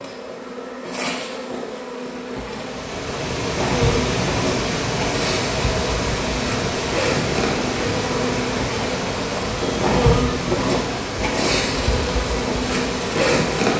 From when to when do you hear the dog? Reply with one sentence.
You can't hear the dog here.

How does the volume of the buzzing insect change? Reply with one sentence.
The loudness of the buzzing insect goes up.